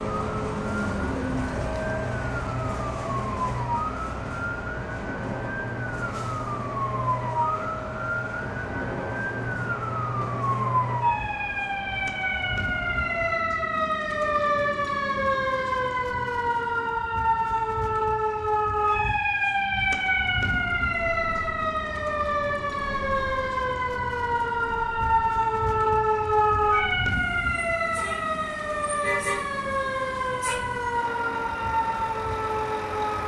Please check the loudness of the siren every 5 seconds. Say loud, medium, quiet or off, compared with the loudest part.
medium, medium, loud, loud, loud, loud, loud.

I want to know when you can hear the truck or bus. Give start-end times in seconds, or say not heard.
0.0-13.4, 20.1-33.2.